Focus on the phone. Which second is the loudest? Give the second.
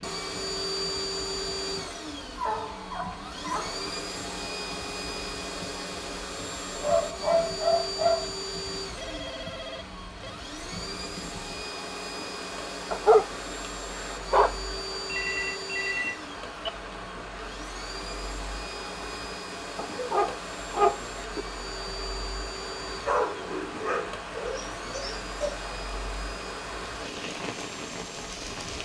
16 s.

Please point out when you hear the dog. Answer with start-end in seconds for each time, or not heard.
2.4-3.9, 6.8-8.3, 12.9-14.6, 19.8-21.4, 23.1-25.6.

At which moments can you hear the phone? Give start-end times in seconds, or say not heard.
8.9-10.4, 15.1-16.7.